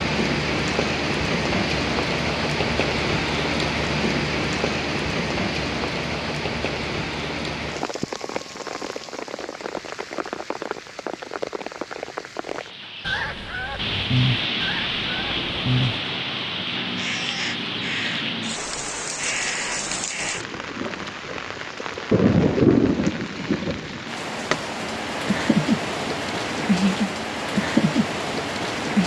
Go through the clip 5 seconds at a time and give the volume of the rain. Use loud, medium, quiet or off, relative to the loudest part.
loud, medium, medium, medium, loud, loud.